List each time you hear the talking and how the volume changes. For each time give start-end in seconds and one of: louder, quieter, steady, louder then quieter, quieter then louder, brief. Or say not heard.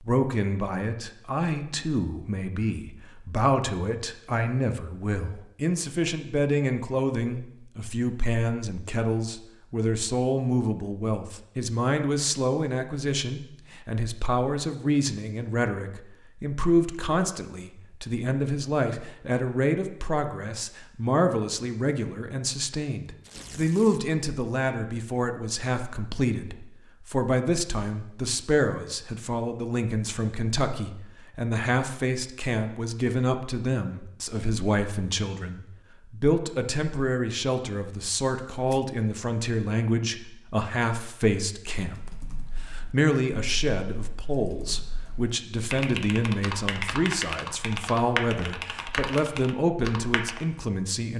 0.0-51.1 steady.